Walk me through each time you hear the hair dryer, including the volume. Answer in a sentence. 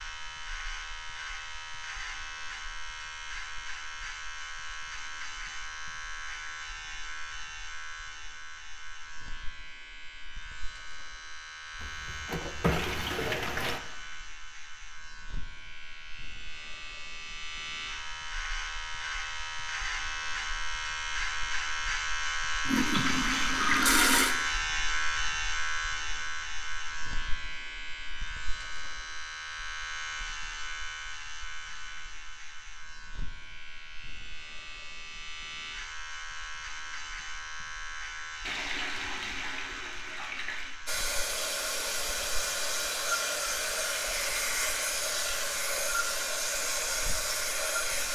The hair dryer can be heard from 40.9 to 48.1 s, at a steady volume.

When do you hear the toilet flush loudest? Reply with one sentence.
The loudest moment of the toilet flush is at 24 seconds.